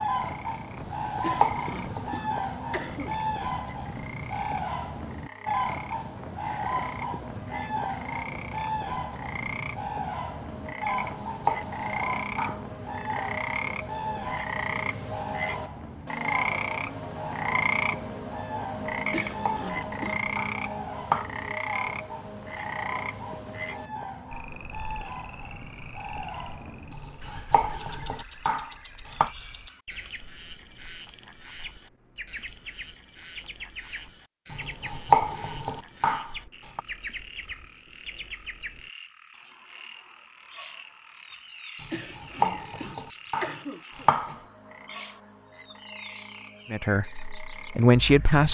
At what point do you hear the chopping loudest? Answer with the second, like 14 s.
35 s.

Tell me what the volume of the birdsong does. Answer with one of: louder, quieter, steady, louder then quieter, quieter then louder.
quieter.